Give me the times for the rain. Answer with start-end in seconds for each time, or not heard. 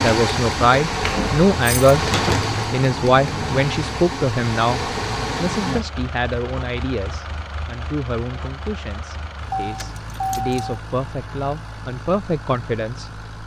not heard.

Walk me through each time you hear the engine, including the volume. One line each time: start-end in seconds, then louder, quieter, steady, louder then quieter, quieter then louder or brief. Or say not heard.
0.0-13.4 quieter.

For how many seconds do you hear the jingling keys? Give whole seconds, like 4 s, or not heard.
3 s.